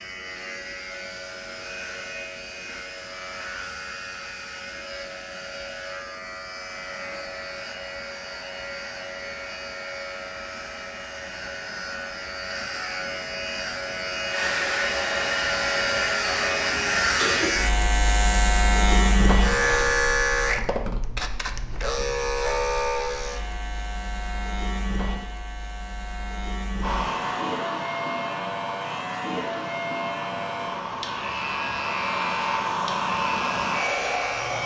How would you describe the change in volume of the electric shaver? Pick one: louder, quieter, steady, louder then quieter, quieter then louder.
louder then quieter.